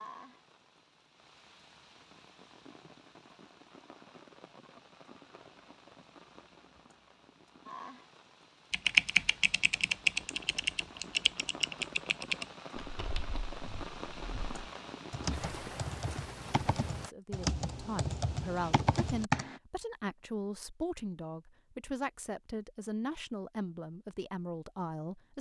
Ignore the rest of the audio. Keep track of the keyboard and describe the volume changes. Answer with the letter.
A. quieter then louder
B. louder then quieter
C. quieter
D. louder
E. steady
A.